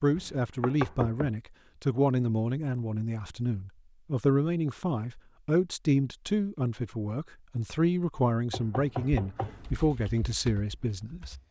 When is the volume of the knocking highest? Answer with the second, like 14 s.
1 s.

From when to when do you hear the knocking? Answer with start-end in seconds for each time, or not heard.
0.1-1.3, 8.5-9.8.